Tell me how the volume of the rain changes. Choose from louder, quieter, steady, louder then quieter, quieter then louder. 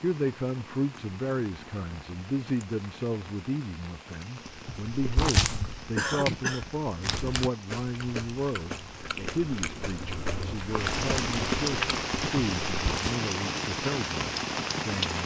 louder.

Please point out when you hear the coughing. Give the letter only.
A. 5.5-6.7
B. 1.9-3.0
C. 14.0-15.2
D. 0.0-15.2
A.